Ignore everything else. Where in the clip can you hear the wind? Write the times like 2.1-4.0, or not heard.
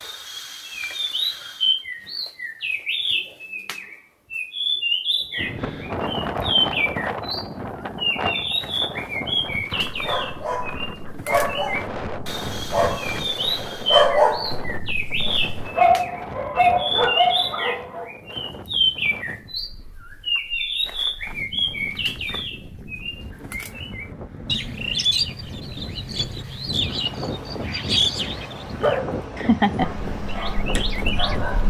5.3-31.6.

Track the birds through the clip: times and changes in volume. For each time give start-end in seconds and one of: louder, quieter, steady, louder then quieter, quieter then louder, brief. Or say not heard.
0.0-31.4 steady.